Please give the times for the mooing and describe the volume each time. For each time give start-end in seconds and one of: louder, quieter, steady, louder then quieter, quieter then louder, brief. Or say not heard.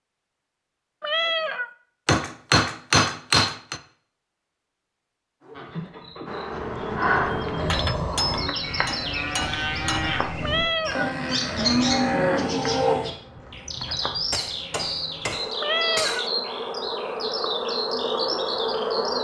5.5-12.9 louder.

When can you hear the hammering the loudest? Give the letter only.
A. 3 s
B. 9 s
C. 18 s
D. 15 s
A.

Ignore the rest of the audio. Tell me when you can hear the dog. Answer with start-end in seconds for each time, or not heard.
not heard.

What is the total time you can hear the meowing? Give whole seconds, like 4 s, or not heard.
2 s.